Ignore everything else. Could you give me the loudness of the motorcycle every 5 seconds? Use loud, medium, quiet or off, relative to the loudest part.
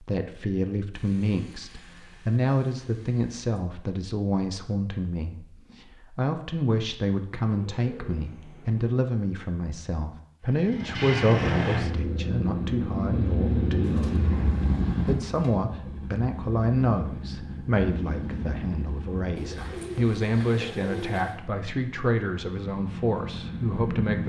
off, off, loud, medium, medium.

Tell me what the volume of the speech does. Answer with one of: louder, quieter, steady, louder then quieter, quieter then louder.
steady.